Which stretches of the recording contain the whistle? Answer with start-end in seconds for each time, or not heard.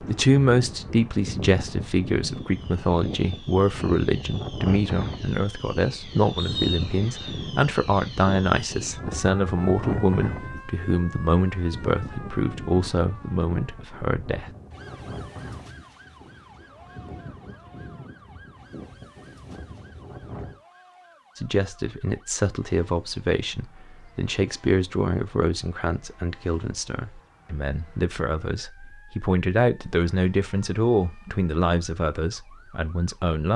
6.3-7.3.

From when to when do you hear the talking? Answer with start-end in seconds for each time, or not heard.
0.0-14.4, 21.4-33.5.